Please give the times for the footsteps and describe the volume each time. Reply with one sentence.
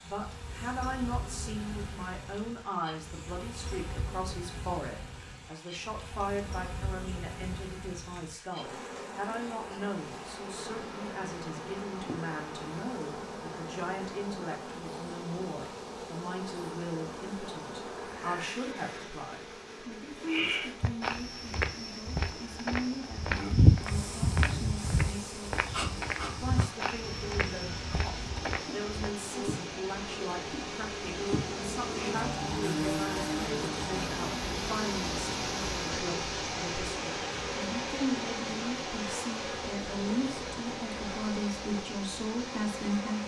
You can hear the footsteps from 20.8 to 29.1 s, getting louder then quieter.